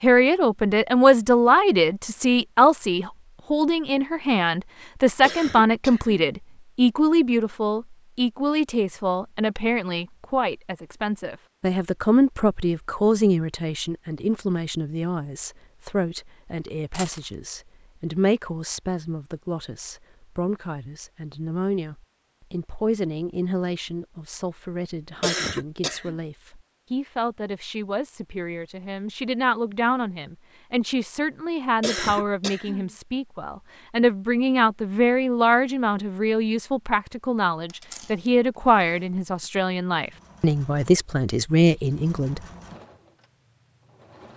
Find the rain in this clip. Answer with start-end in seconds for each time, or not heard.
not heard.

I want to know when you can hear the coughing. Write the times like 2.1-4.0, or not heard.
5.2-6.3, 25.2-26.1, 31.8-32.9.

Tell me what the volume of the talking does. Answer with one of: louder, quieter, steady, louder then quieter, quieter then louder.
quieter then louder.